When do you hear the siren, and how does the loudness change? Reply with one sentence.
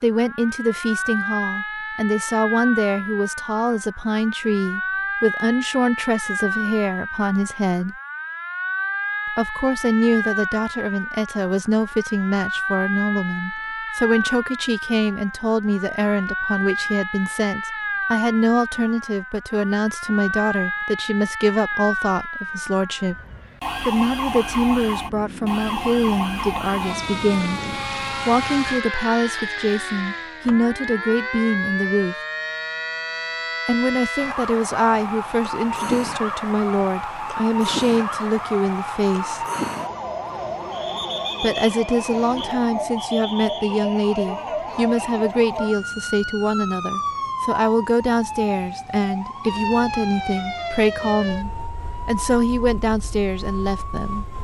The siren can be heard from 0.0 to 54.3 s, at a steady volume.